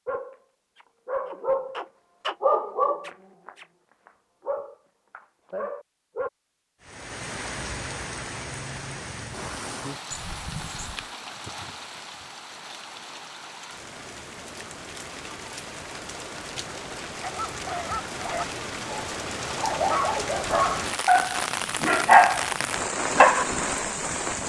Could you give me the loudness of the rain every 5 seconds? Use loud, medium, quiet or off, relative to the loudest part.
off, medium, medium, medium, loud.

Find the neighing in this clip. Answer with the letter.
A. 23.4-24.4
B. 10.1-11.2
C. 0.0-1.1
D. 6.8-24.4
B.